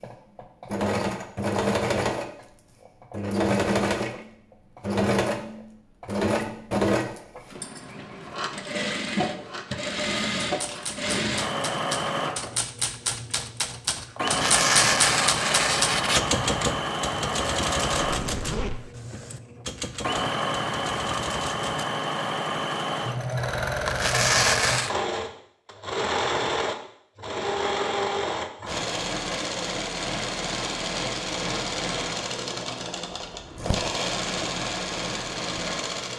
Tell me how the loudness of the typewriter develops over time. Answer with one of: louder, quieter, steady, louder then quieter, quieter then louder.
louder then quieter.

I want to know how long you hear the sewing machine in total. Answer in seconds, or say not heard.
36 s.